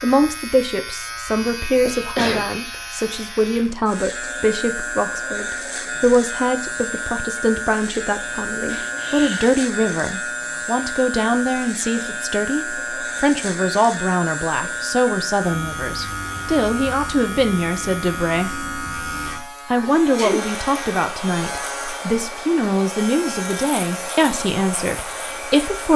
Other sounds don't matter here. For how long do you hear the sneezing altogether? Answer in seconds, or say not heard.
3 s.